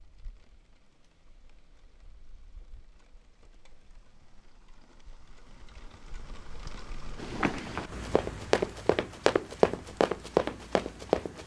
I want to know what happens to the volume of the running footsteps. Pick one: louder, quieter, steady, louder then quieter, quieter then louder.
louder.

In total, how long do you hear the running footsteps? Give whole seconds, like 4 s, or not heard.
4 s.